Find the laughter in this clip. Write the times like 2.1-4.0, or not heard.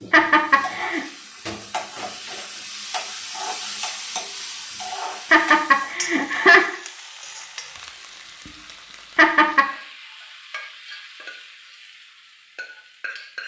0.1-1.1, 5.3-6.8, 9.2-9.7.